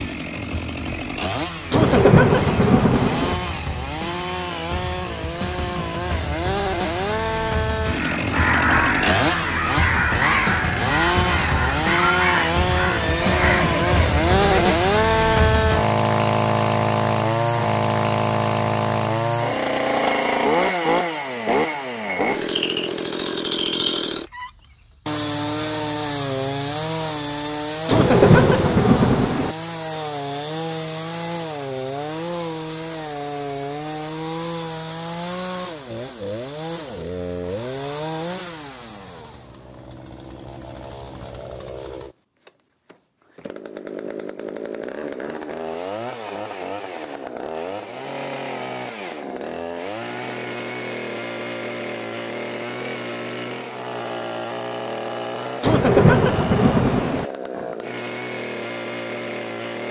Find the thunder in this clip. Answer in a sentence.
You can hear the thunder from 1.7 to 3.4 s, from 27.9 to 29.6 s and from 55.6 to 57.3 s.